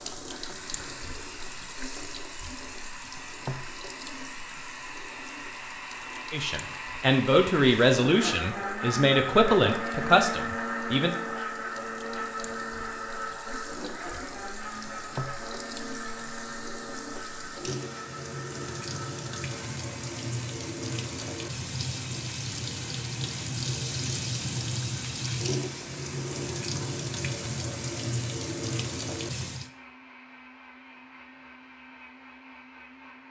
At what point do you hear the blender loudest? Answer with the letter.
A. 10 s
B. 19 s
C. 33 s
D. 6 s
A.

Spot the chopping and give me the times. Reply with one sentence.
The chopping can't be heard in this clip.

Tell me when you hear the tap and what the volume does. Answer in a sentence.
You can hear the tap from 0.0 to 29.7 s, getting quieter then louder.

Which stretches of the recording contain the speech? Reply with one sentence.
You can hear the speech from 6.3 to 11.2 s.